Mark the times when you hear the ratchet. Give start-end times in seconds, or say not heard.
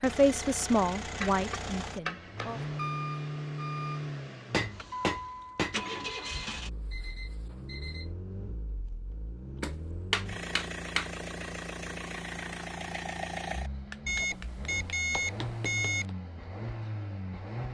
not heard.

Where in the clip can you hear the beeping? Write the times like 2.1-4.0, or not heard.
2.4-4.0, 6.0-8.1, 14.1-16.1.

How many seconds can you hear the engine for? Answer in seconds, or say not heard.
18 s.